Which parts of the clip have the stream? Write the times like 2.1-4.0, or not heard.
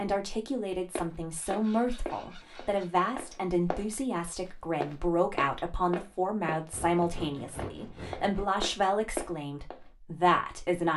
not heard.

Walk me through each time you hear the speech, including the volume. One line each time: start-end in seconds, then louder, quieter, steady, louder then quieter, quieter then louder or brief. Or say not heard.
0.0-10.9 steady.